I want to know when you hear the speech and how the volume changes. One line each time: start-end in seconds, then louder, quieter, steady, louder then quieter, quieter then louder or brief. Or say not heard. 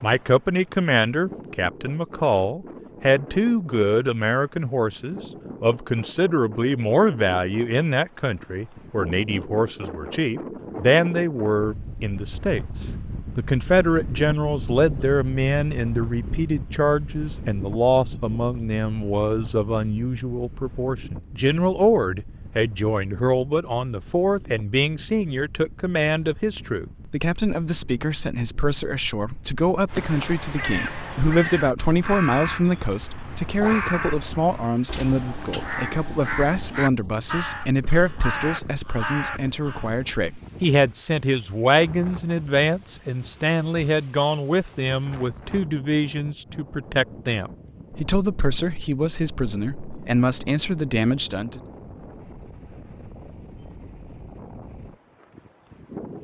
0.0-51.6 steady.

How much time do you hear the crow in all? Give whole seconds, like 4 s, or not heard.
10 s.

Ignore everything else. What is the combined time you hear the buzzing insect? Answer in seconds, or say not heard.
not heard.